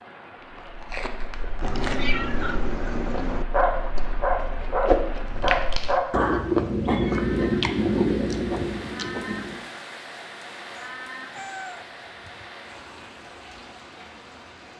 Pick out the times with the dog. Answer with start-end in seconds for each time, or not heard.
3.5-7.0.